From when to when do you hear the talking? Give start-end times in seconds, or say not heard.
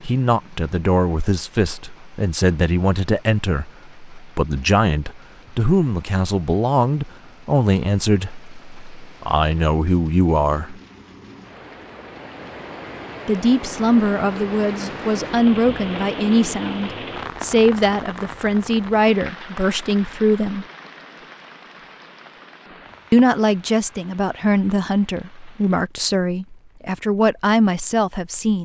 0.0-10.8, 13.2-20.6, 23.1-28.6.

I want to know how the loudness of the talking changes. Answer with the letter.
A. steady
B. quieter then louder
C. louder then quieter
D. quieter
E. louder
A.